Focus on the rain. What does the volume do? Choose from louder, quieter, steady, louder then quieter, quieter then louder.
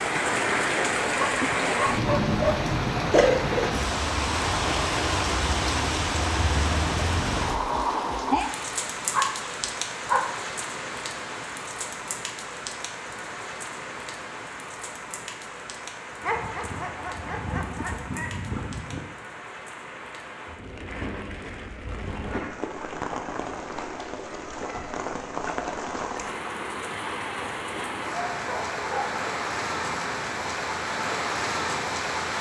quieter then louder.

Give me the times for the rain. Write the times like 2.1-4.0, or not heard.
0.0-32.3.